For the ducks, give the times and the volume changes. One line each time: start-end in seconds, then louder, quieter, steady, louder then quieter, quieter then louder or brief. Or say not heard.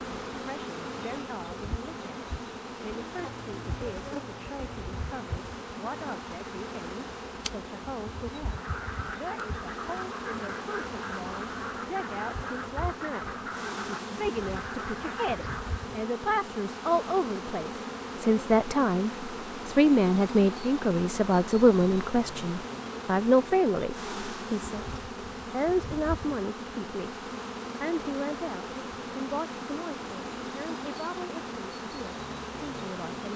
8.4-15.8 steady.